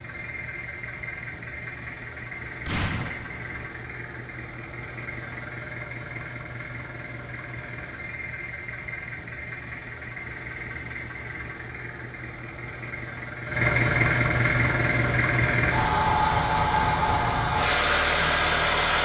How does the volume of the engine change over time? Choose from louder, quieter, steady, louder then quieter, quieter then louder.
louder.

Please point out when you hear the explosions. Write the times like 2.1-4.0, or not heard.
2.6-3.6.